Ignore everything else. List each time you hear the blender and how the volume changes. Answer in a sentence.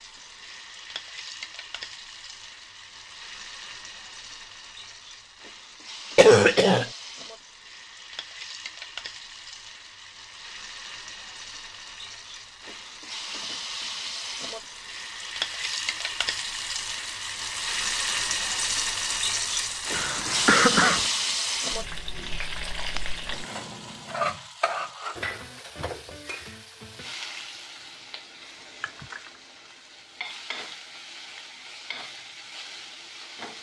You can't hear the blender here.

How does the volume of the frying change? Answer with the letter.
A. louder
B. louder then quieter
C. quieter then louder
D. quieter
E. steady
B.